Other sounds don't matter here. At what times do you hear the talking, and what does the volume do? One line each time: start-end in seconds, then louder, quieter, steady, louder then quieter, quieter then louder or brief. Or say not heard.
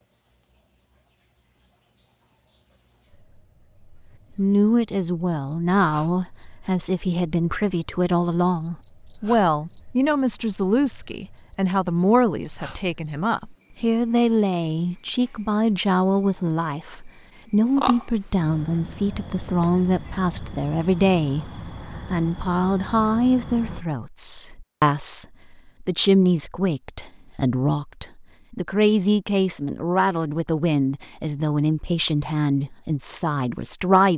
4.3-34.1 steady.